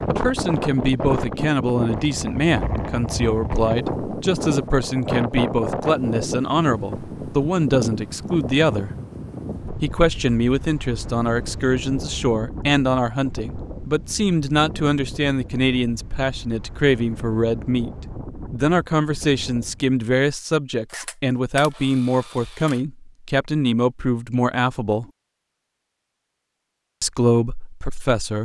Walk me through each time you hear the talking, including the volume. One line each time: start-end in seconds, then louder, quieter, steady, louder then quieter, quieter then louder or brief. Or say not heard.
0.1-8.9 steady
9.8-25.1 steady
27.0-28.3 brief.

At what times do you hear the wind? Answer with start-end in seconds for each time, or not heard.
0.0-19.9.